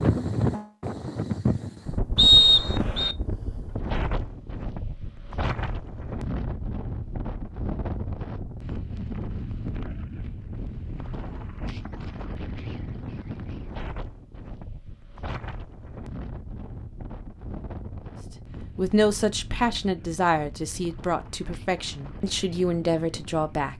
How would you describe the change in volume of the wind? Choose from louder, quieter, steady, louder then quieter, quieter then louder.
quieter.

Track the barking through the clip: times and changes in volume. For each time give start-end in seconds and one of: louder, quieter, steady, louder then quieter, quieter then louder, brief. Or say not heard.
not heard.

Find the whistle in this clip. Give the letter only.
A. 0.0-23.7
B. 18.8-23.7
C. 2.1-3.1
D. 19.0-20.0
C.